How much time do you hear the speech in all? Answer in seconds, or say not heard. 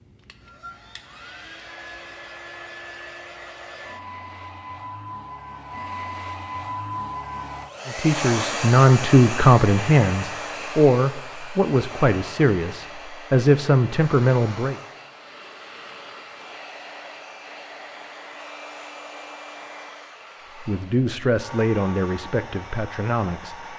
10 s.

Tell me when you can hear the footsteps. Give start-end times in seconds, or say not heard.
not heard.